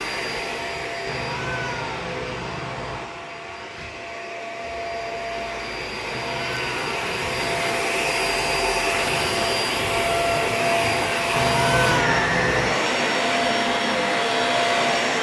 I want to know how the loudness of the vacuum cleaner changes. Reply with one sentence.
The loudness of the vacuum cleaner goes up.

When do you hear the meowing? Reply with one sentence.
The meowing can be heard from 1.1 to 3.1 s, from 6.0 to 7.7 s and from 11.3 to 12.8 s.